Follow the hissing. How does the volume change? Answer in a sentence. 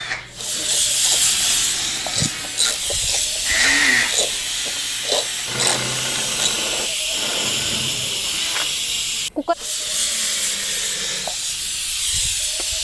The loudness of the hissing stays about the same.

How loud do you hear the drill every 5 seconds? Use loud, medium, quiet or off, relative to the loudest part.
loud, medium, medium.